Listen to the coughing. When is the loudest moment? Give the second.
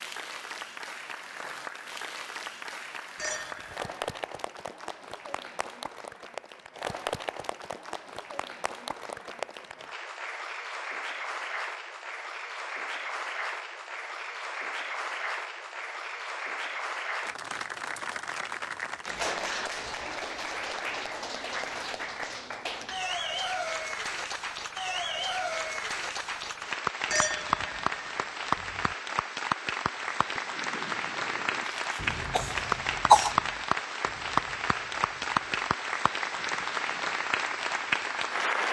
33 s.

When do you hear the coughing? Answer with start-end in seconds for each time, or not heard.
31.6-33.4.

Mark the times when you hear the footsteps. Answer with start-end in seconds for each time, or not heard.
not heard.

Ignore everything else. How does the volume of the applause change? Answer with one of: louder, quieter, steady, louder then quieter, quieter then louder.
louder.